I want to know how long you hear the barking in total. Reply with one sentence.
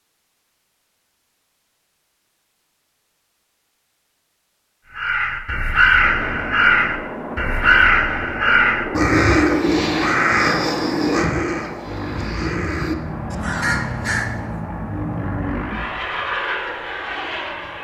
The barking can't be heard in this clip.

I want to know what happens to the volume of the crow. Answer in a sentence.
The loudness of the crow goes down.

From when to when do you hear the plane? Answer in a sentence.
You can hear the plane from 6.0 to 17.7 s.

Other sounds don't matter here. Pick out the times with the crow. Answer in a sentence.
The crow can be heard from 5.0 to 14.4 s.